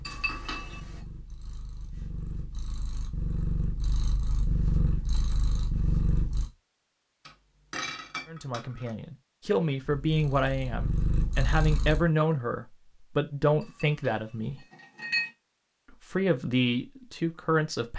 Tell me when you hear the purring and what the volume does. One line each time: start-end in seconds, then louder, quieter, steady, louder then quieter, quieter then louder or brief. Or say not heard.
0.0-6.5 louder
9.8-12.1 brief.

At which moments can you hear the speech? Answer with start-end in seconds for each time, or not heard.
8.2-14.7, 16.1-17.9.